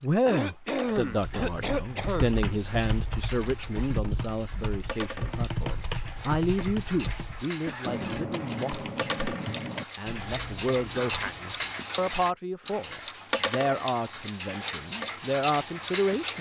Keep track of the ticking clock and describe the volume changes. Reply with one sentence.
The loudness of the ticking clock goes up.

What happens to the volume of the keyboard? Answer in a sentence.
The loudness of the keyboard stays about the same.